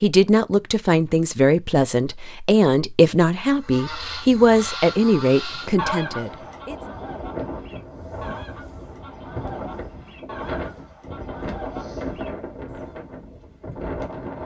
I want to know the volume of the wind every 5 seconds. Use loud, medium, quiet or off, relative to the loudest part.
off, loud, loud.